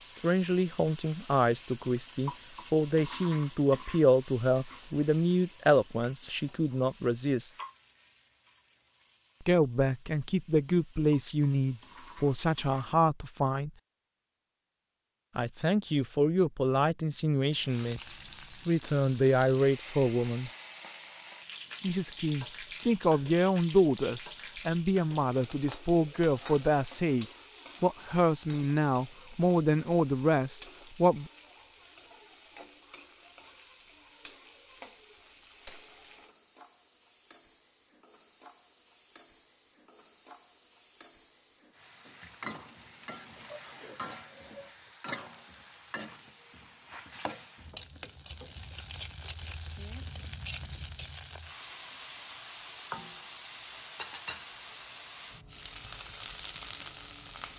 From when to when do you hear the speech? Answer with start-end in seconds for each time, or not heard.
0.0-7.5, 9.4-13.7, 15.3-20.5, 21.8-31.3.